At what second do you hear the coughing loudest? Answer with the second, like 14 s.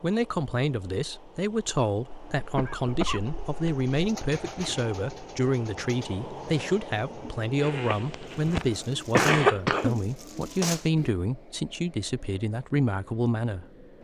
9 s.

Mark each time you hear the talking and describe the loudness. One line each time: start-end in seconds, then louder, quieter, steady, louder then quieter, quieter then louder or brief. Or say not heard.
0.0-13.8 steady.